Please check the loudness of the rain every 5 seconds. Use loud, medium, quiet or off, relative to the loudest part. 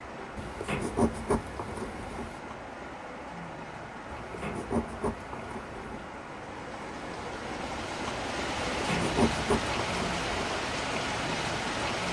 medium, loud, loud.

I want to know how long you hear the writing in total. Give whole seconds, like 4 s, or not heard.
6 s.